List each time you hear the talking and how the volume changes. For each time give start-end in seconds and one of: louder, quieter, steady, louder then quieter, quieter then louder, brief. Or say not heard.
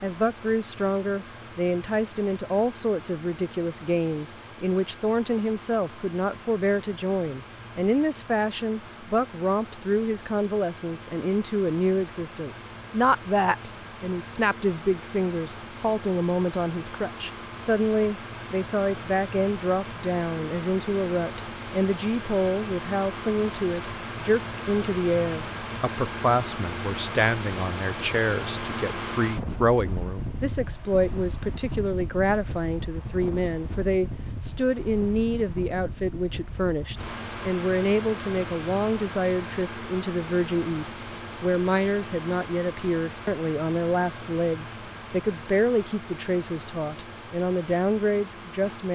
0.0-48.8 steady.